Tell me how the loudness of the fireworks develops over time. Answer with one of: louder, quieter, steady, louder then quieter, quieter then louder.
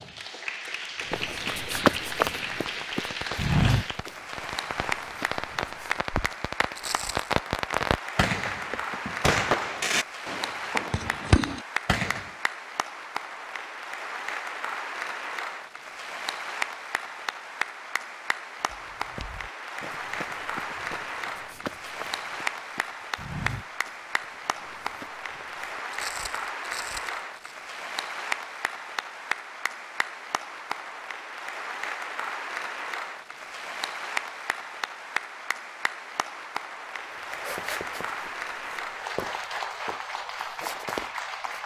louder.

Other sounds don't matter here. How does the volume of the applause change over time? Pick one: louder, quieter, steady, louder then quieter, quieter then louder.
steady.